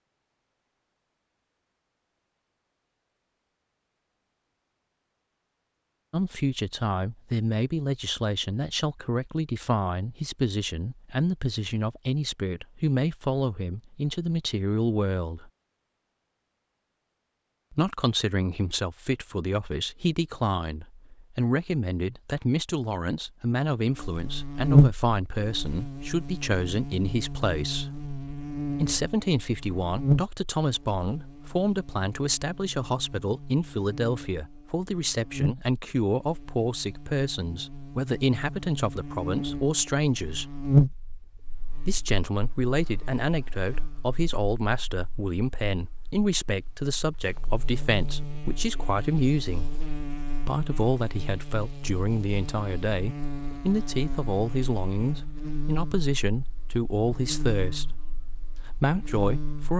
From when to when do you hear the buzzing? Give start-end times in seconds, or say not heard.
23.9-59.7.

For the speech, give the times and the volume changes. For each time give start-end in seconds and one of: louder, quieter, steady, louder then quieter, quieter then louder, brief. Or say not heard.
6.1-15.5 steady
17.7-27.9 steady
28.8-40.6 steady
41.9-49.8 steady
50.5-59.7 steady.